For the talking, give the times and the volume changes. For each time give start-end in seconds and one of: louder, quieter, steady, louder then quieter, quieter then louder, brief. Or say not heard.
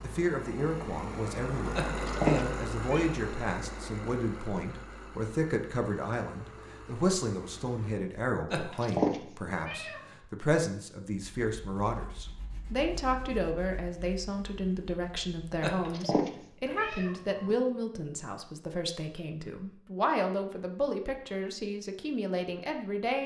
0.0-23.2 steady.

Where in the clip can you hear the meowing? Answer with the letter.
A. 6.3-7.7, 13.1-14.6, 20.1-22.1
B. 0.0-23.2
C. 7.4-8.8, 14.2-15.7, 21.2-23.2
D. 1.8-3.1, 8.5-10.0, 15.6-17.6
D.